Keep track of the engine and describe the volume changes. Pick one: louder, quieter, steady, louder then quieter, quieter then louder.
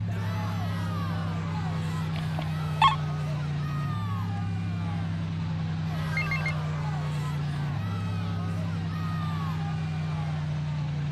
steady.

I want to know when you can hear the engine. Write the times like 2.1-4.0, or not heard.
0.0-11.0.